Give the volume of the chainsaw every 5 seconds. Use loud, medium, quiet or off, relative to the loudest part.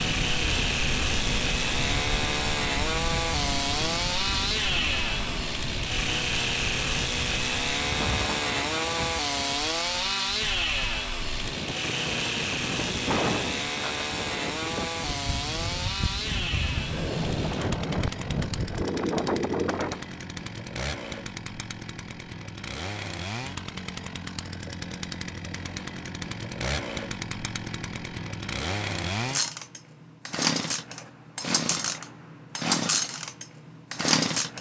loud, loud, loud, medium, medium, medium, loud.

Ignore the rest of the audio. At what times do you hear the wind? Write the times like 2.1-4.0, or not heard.
0.0-20.1.